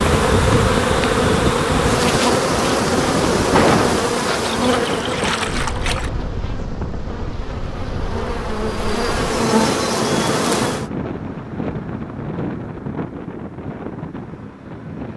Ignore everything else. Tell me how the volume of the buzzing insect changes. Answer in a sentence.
The volume of the buzzing insect goes down, then up.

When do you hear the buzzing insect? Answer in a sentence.
You can hear the buzzing insect from 0.0 to 10.9 s.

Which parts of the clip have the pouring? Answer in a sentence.
You can hear the pouring from 4.5 to 6.1 s.